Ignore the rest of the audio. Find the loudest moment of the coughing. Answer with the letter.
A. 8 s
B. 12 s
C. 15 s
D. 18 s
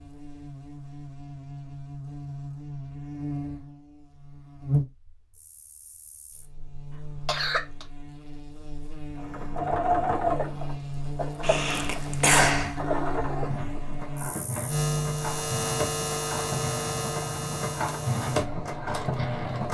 B.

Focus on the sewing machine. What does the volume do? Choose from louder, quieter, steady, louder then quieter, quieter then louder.
quieter then louder.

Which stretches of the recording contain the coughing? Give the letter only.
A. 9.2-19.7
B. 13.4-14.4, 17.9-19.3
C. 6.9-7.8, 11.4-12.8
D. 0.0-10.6
C.